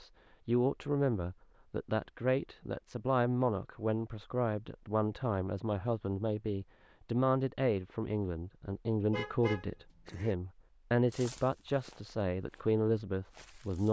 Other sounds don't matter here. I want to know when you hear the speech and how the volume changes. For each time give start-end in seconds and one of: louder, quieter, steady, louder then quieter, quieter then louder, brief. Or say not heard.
0.0-13.8 steady.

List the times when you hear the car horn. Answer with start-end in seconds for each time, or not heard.
9.1-10.3.